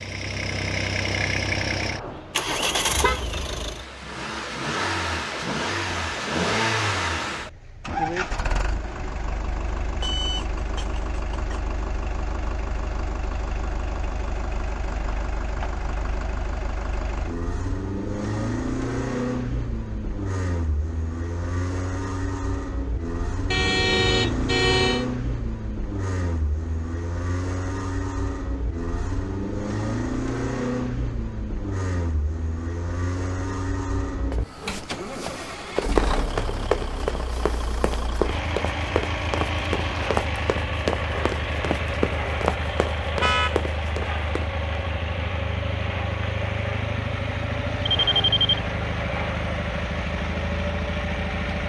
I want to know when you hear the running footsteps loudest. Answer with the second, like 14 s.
36 s.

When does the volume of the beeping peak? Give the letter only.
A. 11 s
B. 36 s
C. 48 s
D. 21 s
C.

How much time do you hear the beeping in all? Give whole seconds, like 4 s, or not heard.
2 s.